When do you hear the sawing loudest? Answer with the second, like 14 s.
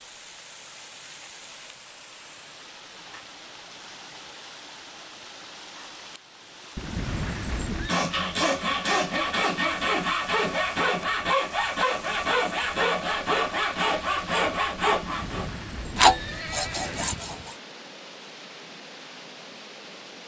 16 s.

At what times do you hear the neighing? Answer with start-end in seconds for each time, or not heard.
6.8-8.0, 15.0-17.3.